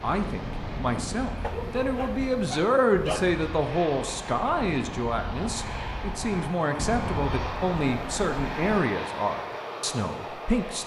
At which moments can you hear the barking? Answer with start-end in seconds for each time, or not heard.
1.4-3.3.